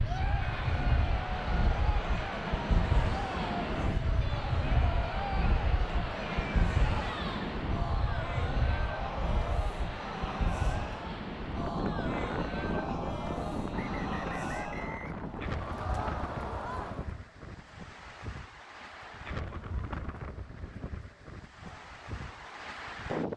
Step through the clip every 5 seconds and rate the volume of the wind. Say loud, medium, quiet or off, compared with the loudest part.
loud, loud, loud, medium, medium.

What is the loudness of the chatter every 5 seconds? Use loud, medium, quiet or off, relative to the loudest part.
loud, loud, loud, loud, quiet.